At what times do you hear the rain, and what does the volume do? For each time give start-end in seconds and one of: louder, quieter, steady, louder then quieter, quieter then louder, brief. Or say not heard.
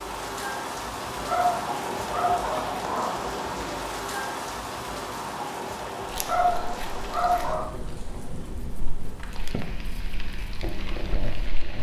0.0-11.7 quieter.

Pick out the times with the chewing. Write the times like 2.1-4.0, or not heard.
6.0-11.7.